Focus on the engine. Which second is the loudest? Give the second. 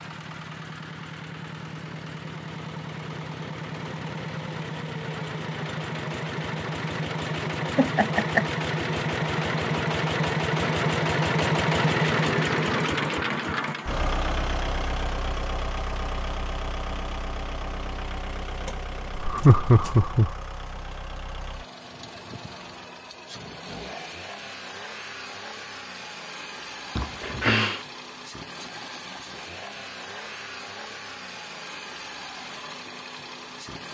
12 s.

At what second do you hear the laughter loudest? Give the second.
20 s.